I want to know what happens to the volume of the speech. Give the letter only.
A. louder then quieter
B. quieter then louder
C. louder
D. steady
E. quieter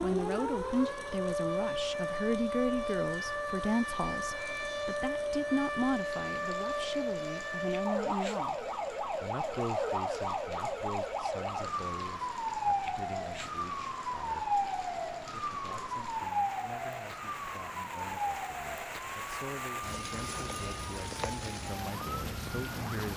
B.